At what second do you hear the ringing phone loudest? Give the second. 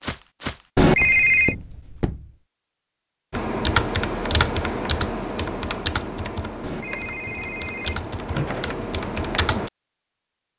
1 s.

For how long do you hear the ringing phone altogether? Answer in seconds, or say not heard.
3 s.